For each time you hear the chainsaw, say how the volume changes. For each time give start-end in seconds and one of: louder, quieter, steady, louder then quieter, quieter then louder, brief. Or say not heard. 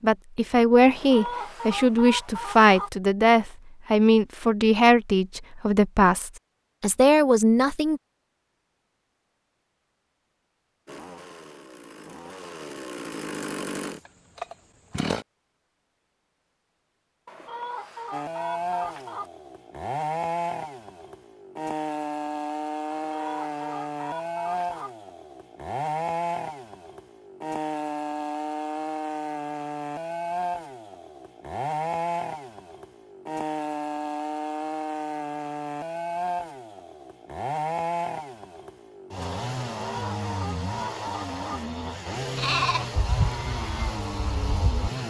10.8-15.2 louder
18.1-45.0 steady.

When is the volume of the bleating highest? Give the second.
43 s.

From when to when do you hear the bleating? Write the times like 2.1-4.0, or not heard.
42.4-44.9.